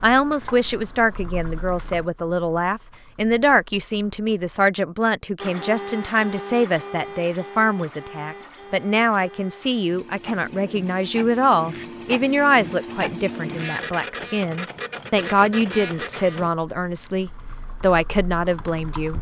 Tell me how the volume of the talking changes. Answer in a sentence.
The loudness of the talking stays about the same.